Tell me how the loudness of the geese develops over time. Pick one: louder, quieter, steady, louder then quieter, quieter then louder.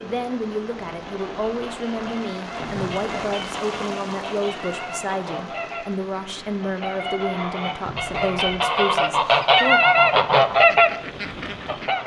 louder.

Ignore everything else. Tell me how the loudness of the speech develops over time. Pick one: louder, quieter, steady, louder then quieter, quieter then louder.
steady.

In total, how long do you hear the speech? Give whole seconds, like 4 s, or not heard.
10 s.